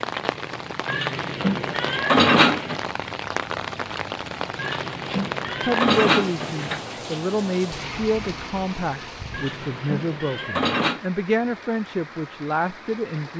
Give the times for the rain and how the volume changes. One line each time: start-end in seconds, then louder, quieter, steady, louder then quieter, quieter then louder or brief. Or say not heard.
0.0-13.3 quieter.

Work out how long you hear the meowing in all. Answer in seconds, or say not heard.
6 s.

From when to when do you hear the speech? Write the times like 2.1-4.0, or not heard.
5.6-13.3.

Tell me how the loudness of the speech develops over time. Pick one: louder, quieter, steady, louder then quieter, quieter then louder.
steady.